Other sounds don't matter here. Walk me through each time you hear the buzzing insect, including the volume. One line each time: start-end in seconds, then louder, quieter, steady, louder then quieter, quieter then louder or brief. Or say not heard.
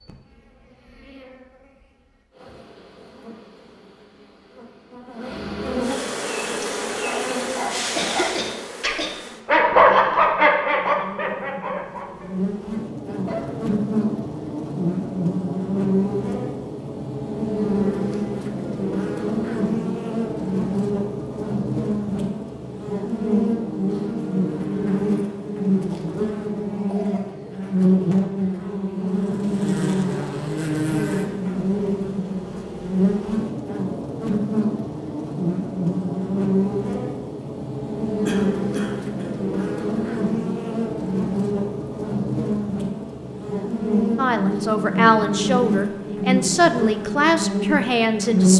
0.0-48.5 louder.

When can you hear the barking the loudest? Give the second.
10 s.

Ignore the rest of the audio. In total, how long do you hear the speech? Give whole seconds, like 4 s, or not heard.
4 s.